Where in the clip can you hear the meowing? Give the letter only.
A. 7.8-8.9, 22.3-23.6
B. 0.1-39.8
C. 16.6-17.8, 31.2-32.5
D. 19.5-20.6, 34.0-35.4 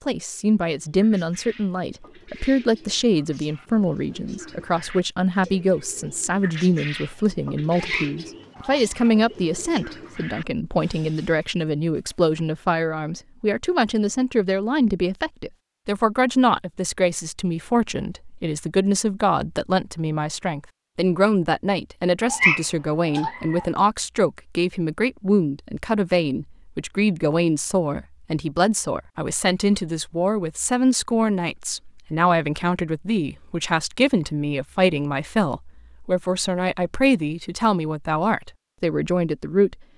A.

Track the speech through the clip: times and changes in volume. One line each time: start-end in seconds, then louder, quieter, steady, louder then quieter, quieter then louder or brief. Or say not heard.
0.1-39.8 steady.